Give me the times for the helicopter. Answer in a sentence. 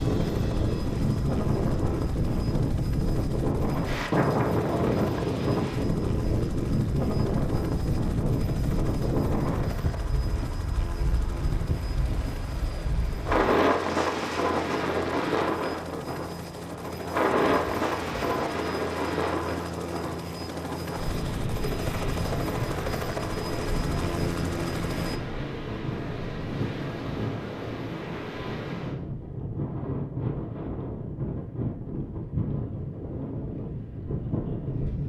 The helicopter can be heard from 0.0 to 25.2 s.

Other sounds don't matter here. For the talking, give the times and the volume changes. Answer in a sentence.
The talking can't be heard in this clip.